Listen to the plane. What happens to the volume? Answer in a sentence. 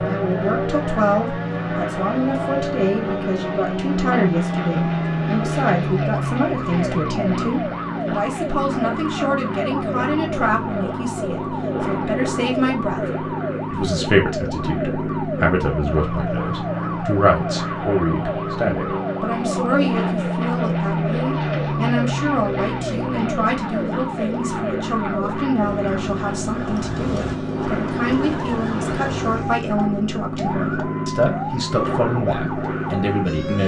The volume of the plane stays about the same.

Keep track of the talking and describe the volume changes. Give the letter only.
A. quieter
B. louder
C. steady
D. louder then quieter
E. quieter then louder
C.